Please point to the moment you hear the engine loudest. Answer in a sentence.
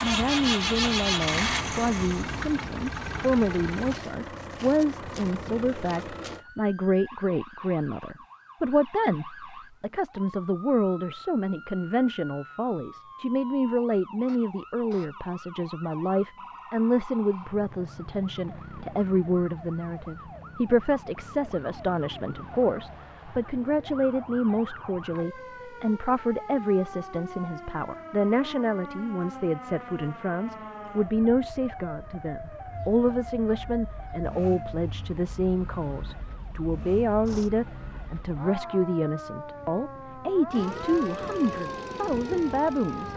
The loudest moment of the engine is at 1 second.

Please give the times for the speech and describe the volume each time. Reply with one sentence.
The speech can be heard from 0.0 to 43.1 s, at a steady volume.